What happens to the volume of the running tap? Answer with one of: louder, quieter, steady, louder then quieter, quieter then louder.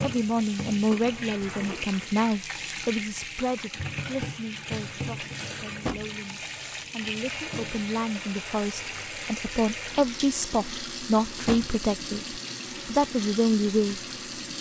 steady.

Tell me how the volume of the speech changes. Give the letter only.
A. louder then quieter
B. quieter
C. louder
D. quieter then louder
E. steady
D.